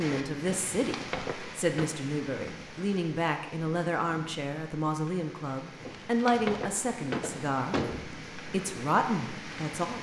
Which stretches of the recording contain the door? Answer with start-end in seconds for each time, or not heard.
0.5-1.9, 5.8-8.2.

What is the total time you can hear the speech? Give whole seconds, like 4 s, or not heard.
10 s.